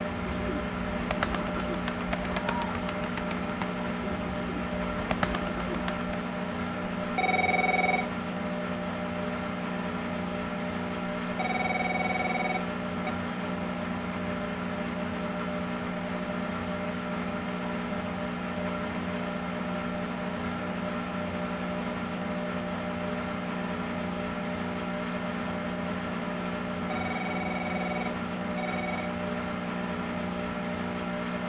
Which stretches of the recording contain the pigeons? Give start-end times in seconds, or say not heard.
0.1-6.2.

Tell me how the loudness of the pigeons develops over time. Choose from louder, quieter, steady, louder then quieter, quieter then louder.
quieter then louder.